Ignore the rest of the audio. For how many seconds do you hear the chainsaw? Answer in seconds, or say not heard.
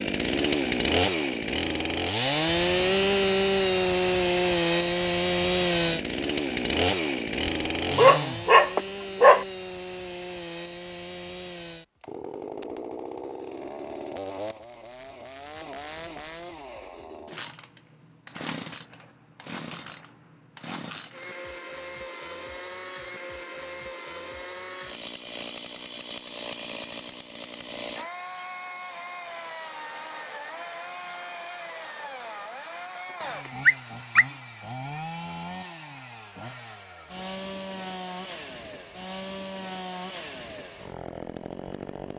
42 s.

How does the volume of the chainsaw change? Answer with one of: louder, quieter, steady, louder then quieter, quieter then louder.
quieter.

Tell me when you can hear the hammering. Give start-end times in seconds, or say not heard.
not heard.